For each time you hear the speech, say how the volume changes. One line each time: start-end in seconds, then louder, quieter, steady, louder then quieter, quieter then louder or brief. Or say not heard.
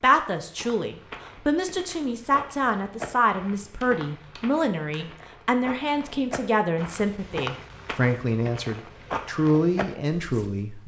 0.0-10.8 steady.